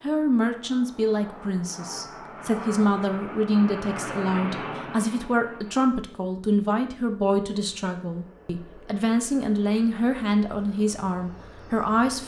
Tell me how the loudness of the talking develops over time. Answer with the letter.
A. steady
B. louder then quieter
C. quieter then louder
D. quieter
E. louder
A.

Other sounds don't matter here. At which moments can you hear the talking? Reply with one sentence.
The talking can be heard from 0.0 to 12.2 s.